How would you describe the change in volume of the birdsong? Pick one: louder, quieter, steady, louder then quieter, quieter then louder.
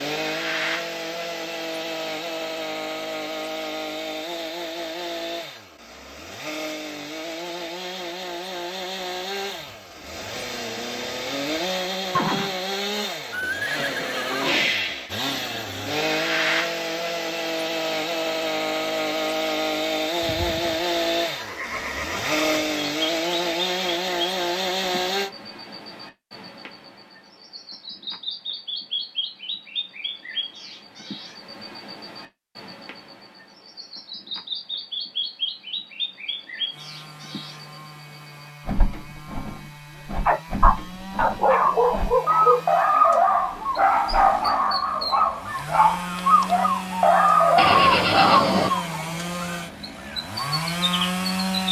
louder.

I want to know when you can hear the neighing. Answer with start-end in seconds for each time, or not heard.
12.1-14.8, 20.2-22.6, 47.5-48.7.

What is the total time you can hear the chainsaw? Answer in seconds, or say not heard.
40 s.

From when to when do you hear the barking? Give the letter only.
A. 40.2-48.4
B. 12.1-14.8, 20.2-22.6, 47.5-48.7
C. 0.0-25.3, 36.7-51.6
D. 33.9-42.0
A.